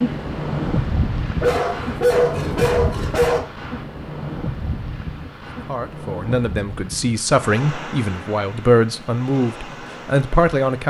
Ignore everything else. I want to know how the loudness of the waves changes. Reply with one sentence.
The volume of the waves goes down.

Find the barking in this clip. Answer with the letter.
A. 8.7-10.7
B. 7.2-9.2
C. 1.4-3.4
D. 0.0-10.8
C.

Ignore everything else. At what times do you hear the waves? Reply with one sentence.
You can hear the waves from 0.0 to 10.8 s.